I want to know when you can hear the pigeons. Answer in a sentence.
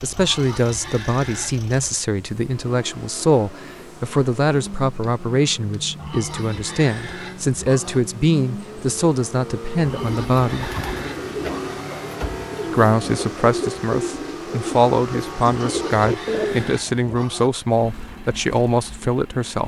The pigeons can be heard from 10.0 to 17.1 s.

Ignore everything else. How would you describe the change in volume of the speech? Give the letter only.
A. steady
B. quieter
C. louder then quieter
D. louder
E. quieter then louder
A.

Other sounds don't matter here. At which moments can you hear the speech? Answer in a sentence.
You can hear the speech from 0.0 to 10.7 s and from 12.7 to 19.6 s.